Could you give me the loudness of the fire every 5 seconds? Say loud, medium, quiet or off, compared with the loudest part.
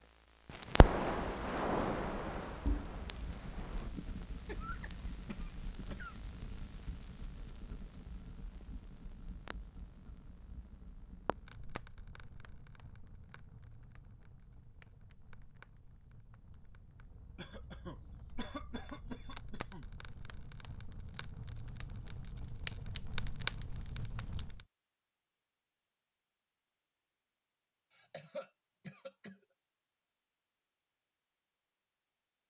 loud, quiet, quiet, quiet, medium, off, off.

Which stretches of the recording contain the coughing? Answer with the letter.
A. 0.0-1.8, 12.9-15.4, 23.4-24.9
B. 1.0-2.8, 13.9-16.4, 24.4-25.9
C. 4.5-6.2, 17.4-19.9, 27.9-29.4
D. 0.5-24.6
C.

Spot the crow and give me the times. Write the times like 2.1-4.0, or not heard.
not heard.